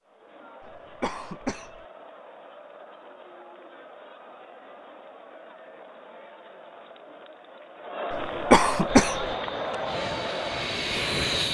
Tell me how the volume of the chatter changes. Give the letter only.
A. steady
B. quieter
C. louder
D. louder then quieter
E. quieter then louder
C.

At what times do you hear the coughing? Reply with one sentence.
The coughing can be heard from 0.6 to 1.9 s and from 8.1 to 9.3 s.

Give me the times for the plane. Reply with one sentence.
The plane can be heard from 8.8 to 11.4 s.